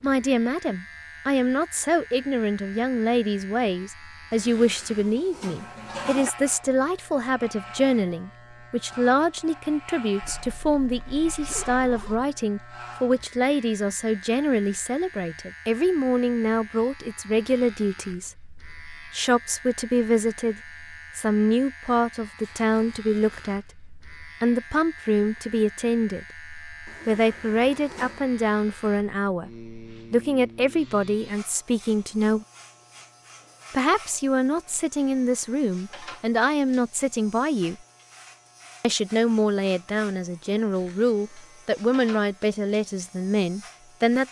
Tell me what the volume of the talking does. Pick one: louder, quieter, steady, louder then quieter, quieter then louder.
steady.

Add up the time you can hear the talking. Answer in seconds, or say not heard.
42 s.